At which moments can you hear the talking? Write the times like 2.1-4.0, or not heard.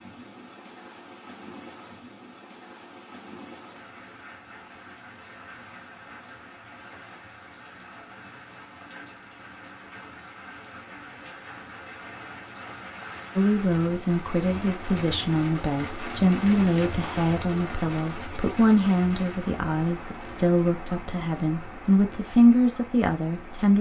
13.3-23.7.